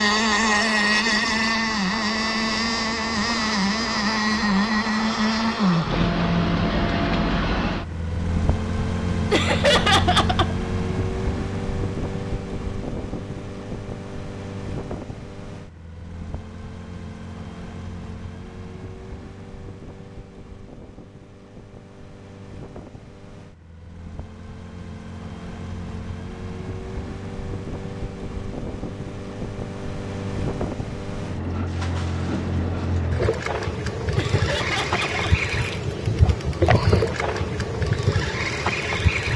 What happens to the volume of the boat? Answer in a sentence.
The volume of the boat goes down, then up.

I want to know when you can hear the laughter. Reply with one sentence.
The laughter can be heard from 9.3 to 10.6 s and from 34.1 to 35.2 s.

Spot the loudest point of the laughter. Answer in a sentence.
The volume of the laughter peaks at 10 seconds.